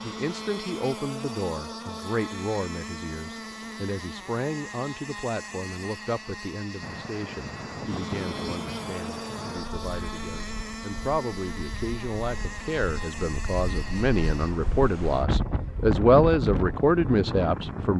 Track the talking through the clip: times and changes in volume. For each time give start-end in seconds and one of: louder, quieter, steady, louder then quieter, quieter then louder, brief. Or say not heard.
0.0-17.9 quieter then louder.